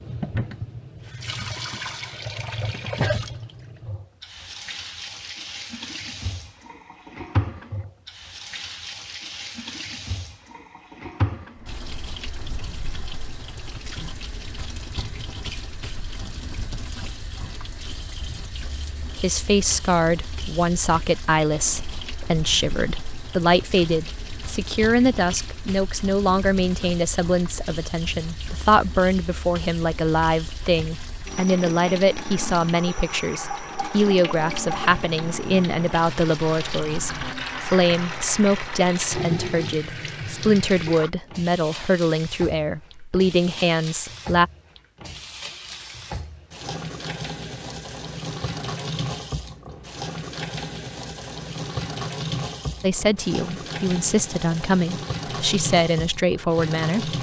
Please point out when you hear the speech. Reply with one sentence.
The speech can be heard from 19.1 to 44.5 s and from 52.8 to 57.1 s.